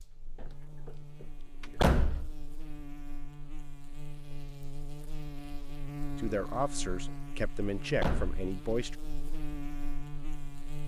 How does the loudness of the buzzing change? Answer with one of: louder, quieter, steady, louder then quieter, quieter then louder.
louder.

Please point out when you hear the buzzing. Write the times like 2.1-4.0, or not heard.
0.0-10.8.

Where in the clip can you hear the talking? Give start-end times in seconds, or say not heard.
6.2-8.9.